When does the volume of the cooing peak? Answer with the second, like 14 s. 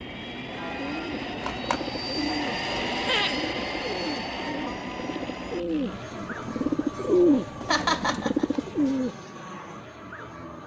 7 s.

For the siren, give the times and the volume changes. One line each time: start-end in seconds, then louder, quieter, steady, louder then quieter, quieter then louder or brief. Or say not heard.
not heard.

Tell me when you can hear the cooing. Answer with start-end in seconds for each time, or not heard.
0.7-9.2.